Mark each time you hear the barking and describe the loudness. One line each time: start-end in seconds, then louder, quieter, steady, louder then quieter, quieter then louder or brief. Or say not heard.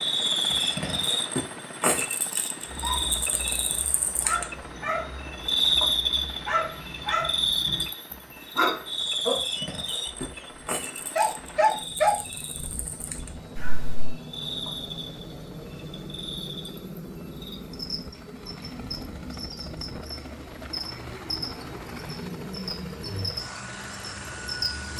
2.6-14.2 louder.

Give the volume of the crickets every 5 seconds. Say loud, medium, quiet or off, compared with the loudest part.
loud, loud, medium, quiet, medium.